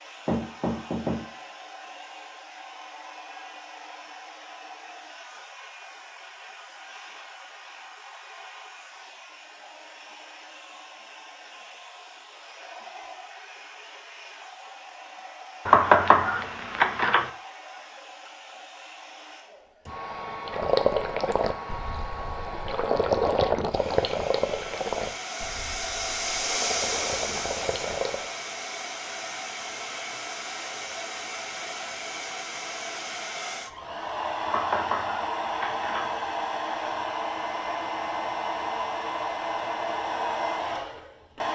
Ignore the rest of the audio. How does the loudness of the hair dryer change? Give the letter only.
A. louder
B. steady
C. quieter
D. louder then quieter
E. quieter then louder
A.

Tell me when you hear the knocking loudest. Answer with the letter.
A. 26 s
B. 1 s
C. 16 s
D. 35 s
C.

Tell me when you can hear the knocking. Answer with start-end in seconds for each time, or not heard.
0.2-1.2, 15.7-17.3, 34.5-36.1.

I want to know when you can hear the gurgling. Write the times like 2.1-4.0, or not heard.
20.4-28.2.